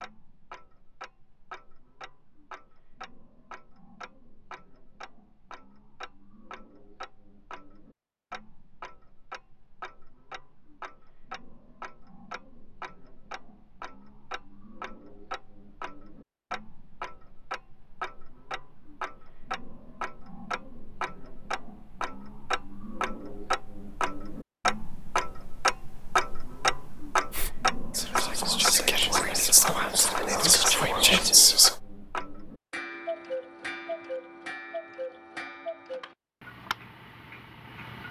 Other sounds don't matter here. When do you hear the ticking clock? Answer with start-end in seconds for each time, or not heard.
0.0-38.0.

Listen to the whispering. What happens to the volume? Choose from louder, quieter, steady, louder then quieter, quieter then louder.
louder.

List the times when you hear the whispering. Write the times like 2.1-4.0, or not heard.
27.3-31.8.